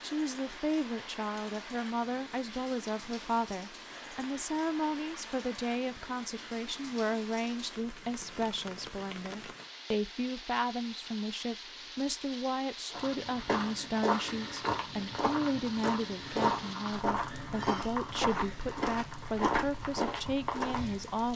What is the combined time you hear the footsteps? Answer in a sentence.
You can hear the footsteps for 8 seconds altogether.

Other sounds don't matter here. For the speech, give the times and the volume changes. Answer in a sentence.
You can hear the speech from 0.0 to 21.3 s, at a steady volume.